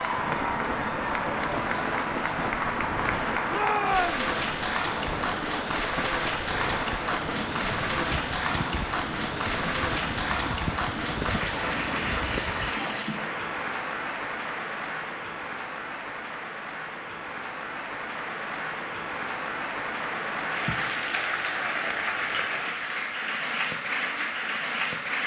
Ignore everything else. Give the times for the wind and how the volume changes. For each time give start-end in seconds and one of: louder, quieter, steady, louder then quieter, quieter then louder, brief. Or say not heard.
0.0-12.8 steady.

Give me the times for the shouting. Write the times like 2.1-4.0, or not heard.
3.5-4.3.